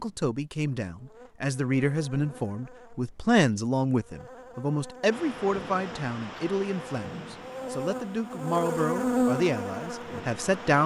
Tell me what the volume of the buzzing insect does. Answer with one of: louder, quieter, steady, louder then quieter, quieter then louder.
louder.